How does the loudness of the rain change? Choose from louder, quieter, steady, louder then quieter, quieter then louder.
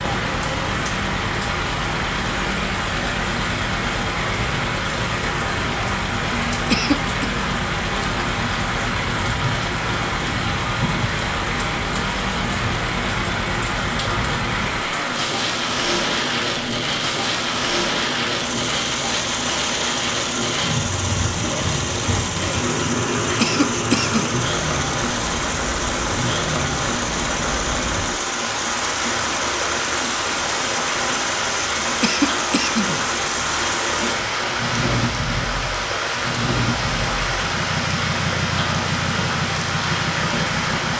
steady.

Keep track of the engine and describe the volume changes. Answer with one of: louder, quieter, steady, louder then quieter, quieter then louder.
steady.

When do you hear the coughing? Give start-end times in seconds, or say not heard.
6.7-7.3, 23.4-24.3, 32.0-32.9.